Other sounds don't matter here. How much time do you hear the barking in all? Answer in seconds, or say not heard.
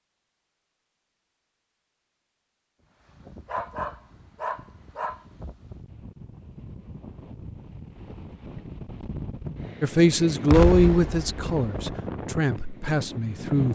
2 s.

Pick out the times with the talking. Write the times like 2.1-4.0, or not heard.
9.8-13.7.